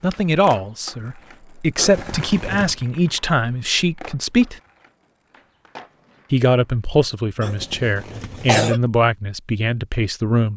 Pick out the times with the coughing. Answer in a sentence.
You can hear the coughing from 1.8 to 2.8 s and from 7.4 to 8.8 s.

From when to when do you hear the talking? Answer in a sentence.
You can hear the talking from 0.0 to 4.5 s and from 6.3 to 10.5 s.